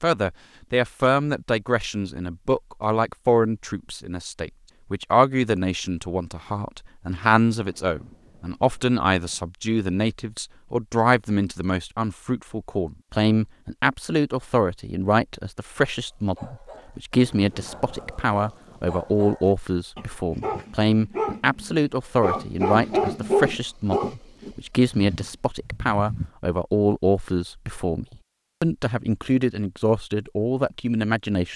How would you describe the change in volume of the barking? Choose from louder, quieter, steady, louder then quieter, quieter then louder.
louder then quieter.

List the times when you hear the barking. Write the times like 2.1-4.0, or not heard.
16.1-26.3.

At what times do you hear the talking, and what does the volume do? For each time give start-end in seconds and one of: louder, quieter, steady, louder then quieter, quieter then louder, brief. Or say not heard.
0.0-31.5 steady.